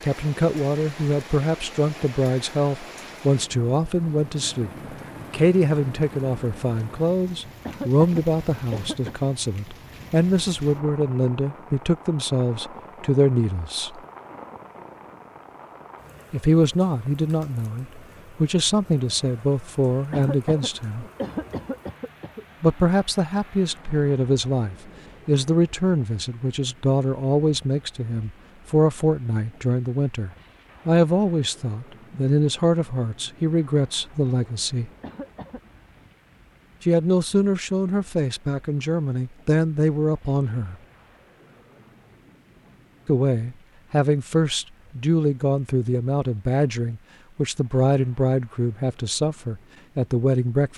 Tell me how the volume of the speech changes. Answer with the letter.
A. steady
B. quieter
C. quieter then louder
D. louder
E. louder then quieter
A.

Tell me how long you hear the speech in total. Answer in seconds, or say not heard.
43 s.